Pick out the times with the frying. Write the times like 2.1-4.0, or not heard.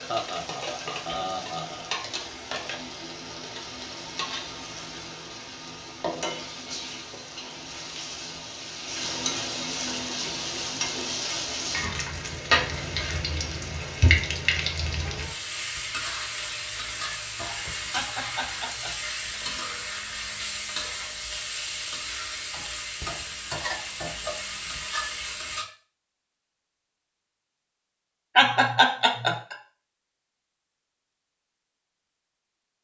0.0-25.6.